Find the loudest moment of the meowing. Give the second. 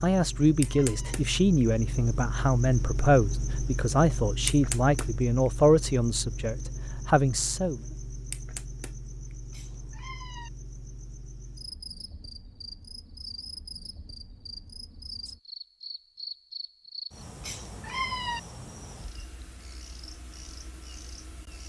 18 s.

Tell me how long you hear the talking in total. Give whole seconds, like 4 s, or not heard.
8 s.